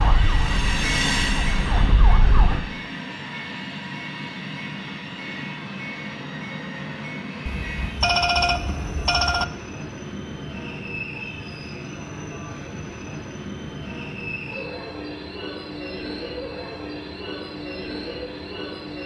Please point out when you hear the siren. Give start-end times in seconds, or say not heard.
0.0-2.6.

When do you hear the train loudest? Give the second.
1 s.